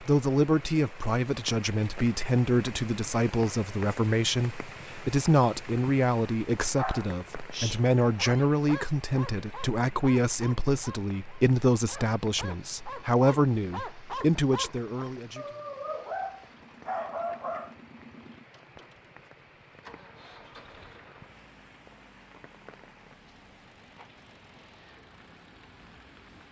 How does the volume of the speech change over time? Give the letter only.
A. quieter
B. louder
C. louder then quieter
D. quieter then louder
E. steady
E.